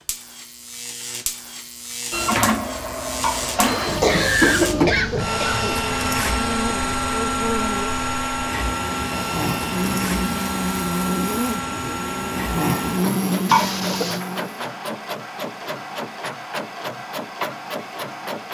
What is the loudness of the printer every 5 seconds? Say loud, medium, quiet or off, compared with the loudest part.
loud, loud, medium, medium.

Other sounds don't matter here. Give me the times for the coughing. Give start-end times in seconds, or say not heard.
3.2-5.8, 13.4-14.2.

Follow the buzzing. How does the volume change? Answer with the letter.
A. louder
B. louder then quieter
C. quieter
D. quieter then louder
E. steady
A.